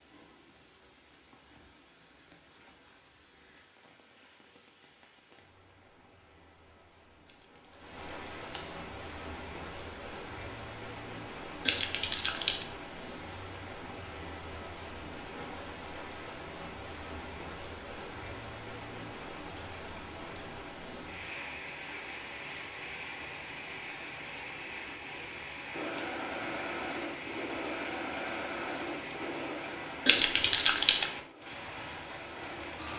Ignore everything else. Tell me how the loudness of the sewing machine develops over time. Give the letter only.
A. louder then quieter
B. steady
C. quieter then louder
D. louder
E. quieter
E.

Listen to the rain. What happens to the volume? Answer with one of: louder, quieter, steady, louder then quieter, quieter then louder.
louder.